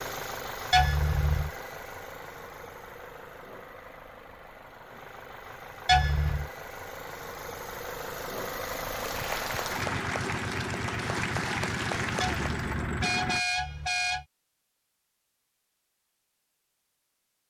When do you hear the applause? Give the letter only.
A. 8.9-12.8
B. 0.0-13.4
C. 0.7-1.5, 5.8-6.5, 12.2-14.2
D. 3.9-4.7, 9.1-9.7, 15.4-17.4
A.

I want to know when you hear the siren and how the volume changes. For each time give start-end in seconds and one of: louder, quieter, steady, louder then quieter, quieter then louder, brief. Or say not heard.
not heard.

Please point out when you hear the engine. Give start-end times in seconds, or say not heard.
0.0-13.4.